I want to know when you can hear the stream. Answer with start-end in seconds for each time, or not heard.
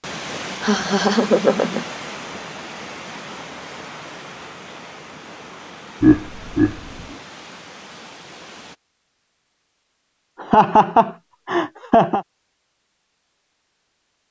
0.0-8.8.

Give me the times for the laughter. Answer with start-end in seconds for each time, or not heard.
0.6-1.9, 6.0-7.2, 10.4-12.2.